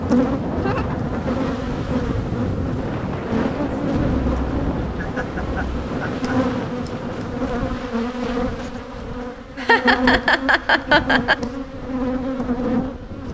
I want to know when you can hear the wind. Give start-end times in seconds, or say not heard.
0.0-13.2.